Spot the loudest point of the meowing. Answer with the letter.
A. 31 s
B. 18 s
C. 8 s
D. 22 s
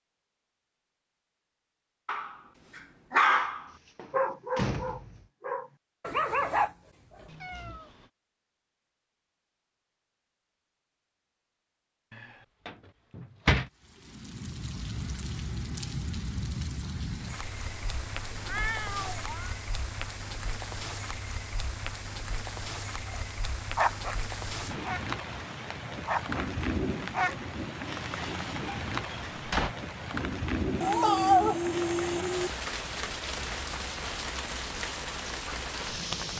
A.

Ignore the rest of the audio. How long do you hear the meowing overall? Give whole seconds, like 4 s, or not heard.
5 s.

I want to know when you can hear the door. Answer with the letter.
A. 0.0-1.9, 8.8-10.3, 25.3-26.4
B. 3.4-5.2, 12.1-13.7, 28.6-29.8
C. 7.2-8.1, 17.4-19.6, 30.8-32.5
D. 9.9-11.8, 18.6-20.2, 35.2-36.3
B.